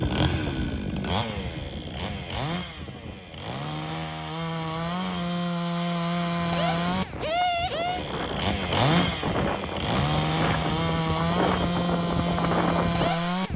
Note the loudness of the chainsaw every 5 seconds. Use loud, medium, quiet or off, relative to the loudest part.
medium, loud, loud.